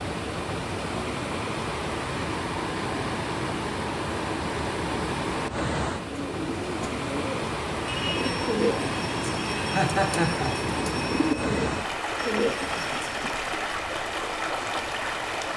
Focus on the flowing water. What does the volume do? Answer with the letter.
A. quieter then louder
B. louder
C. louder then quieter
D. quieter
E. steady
E.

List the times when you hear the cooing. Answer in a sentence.
The cooing can be heard from 6.0 to 13.3 s.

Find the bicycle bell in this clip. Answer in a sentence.
The bicycle bell can't be heard in this clip.